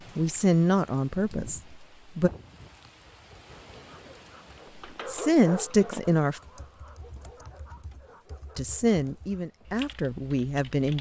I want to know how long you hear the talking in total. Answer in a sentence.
You can hear the talking for 6 seconds altogether.